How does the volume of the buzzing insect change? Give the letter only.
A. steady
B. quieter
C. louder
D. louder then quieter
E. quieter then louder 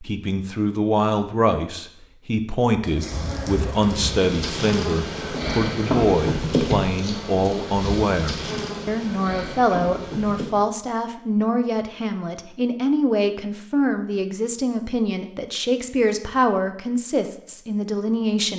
D.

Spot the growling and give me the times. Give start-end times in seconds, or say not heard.
not heard.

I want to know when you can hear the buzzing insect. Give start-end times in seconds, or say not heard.
2.9-10.6.